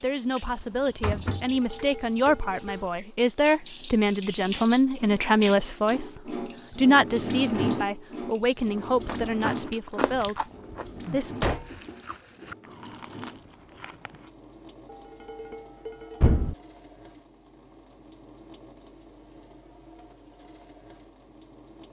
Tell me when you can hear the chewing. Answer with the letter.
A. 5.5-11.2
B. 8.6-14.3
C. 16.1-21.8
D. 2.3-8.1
B.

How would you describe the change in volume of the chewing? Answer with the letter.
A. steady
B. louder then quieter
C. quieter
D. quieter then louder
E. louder
C.